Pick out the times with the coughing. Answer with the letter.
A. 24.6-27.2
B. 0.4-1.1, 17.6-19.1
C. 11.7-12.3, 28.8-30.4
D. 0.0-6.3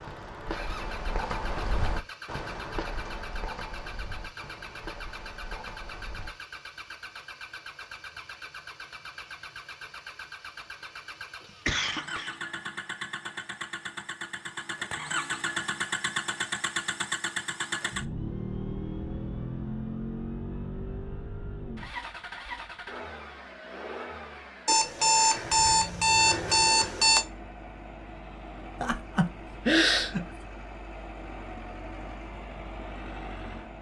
C.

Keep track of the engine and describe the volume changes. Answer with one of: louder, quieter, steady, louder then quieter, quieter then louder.
louder then quieter.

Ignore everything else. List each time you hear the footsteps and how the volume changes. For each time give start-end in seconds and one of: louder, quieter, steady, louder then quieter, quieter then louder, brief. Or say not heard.
0.0-6.3 quieter.